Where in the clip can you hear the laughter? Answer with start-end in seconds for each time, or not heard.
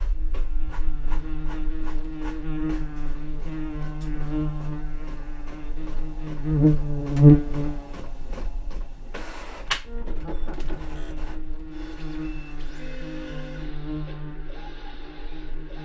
10.1-10.8.